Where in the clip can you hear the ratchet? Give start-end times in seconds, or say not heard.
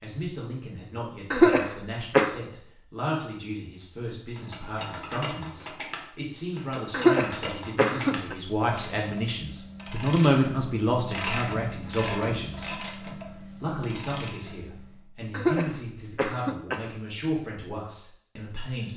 4.3-15.1.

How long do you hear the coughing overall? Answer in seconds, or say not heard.
4 s.